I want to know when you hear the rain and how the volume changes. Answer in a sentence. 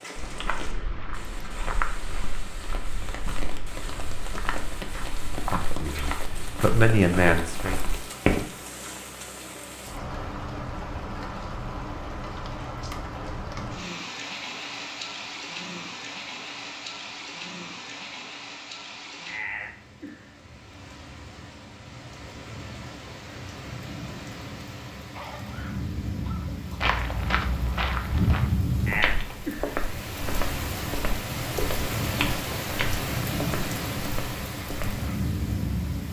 The rain can be heard from 0.0 to 36.0 s, getting louder.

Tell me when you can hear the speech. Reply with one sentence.
The speech can be heard from 5.3 to 7.8 s.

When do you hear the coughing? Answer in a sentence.
You can hear the coughing from 25.1 to 26.8 s.